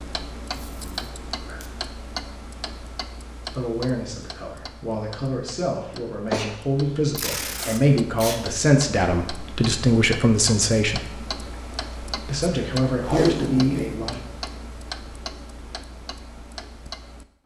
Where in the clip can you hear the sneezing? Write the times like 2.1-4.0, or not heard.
5.8-7.0.